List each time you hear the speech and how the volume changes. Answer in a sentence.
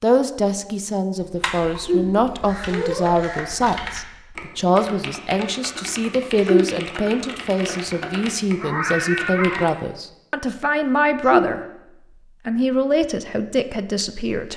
You can hear the speech from 0.0 to 11.6 s, at a steady volume; and briefly from 12.4 to 14.5 s.